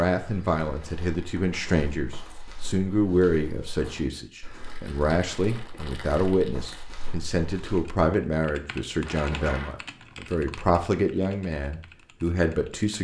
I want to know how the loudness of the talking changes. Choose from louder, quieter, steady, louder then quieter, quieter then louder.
steady.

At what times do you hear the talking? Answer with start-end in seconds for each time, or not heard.
0.0-12.9.